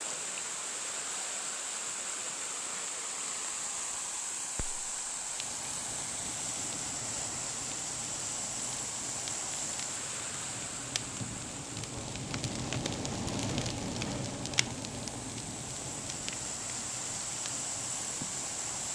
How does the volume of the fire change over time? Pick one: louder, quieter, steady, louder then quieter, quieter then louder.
louder then quieter.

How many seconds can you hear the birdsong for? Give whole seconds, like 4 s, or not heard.
not heard.